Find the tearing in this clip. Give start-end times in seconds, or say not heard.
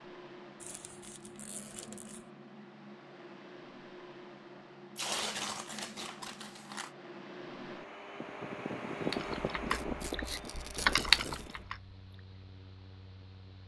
0.6-2.2, 5.0-6.9, 9.7-11.6.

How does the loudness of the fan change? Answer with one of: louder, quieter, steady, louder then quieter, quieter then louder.
louder then quieter.